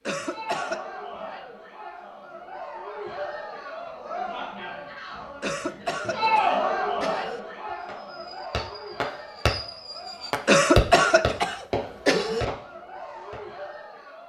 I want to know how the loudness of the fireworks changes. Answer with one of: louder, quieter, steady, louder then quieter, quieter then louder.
louder then quieter.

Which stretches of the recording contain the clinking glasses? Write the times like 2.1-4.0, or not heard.
not heard.